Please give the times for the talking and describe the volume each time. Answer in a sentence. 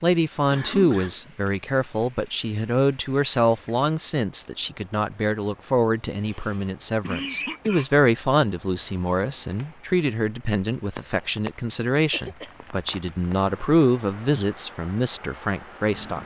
The talking can be heard from 0.0 to 16.2 s, at a steady volume.